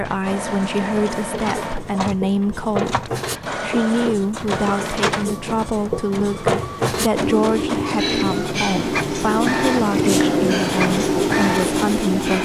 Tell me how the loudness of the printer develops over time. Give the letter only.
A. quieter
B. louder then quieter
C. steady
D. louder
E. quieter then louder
C.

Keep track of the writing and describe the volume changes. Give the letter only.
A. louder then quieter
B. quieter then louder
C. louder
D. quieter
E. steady
C.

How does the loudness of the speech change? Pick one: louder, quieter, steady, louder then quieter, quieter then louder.
steady.